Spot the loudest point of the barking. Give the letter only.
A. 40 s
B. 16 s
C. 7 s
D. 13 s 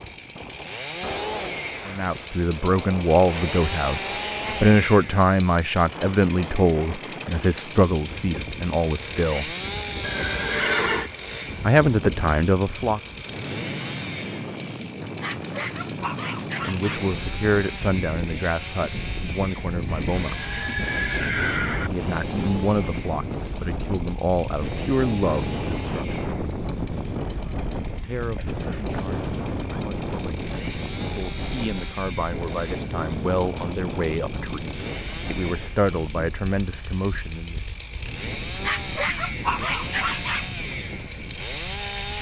A.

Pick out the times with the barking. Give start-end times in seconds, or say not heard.
15.2-17.1, 38.6-40.5.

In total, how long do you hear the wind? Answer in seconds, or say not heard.
42 s.